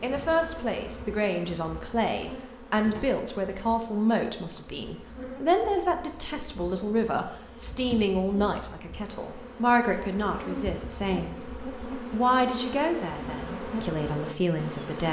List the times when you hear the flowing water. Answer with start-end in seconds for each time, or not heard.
not heard.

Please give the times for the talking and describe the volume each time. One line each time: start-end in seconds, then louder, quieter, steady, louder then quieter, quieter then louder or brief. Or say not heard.
0.0-15.0 steady.